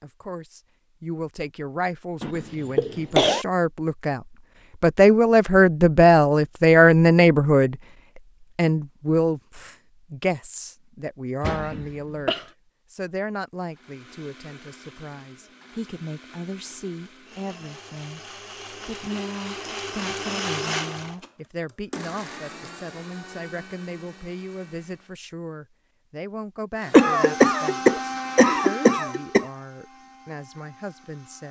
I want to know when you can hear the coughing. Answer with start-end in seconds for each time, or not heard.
2.2-3.5, 11.4-12.4, 26.9-29.4.